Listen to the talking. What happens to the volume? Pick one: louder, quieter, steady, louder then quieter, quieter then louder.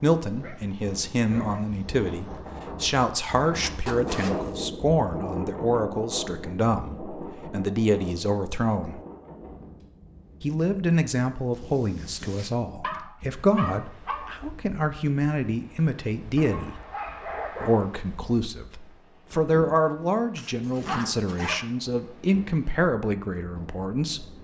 steady.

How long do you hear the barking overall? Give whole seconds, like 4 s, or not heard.
4 s.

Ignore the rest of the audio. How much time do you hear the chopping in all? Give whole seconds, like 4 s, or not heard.
not heard.